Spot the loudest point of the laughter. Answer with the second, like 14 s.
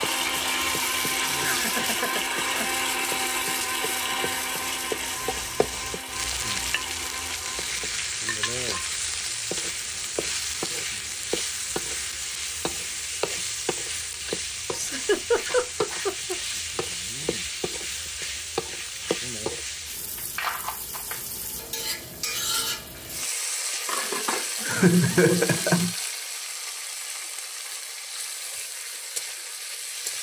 25 s.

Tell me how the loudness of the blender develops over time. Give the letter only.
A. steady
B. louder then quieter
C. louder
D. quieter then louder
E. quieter
E.